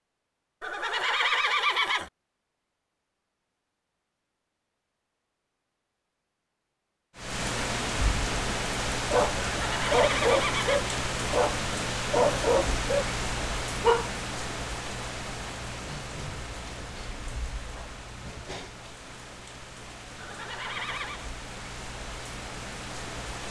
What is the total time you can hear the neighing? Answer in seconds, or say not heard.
4 s.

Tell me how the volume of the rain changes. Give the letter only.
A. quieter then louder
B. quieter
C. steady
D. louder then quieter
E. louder
B.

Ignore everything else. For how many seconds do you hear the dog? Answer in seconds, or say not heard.
5 s.